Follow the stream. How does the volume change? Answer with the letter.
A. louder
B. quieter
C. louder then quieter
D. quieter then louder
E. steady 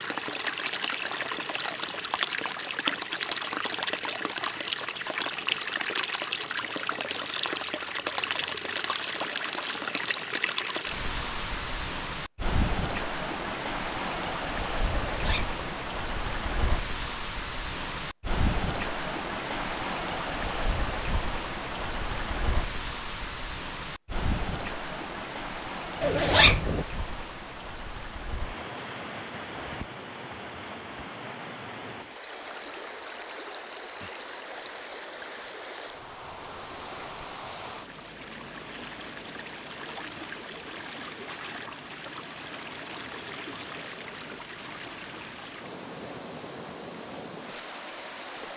B.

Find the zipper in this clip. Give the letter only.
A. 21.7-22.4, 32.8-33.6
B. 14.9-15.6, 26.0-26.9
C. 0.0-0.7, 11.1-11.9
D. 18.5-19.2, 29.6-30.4
B.